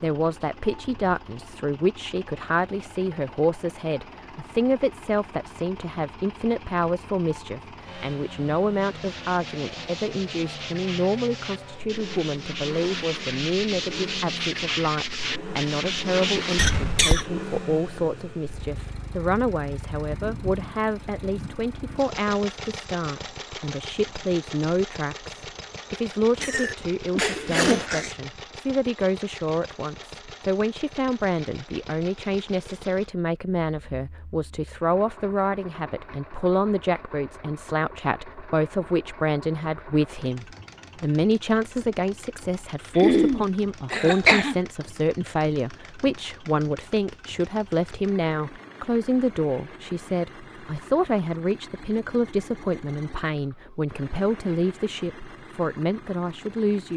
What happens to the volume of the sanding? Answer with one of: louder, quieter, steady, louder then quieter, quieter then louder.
louder.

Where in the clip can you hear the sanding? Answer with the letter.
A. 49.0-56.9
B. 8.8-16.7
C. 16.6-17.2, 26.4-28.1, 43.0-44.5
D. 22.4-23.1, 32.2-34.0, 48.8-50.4
B.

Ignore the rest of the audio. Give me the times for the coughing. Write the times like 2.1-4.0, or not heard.
16.6-17.2, 26.4-28.1, 43.0-44.5.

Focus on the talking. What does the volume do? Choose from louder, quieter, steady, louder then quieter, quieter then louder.
steady.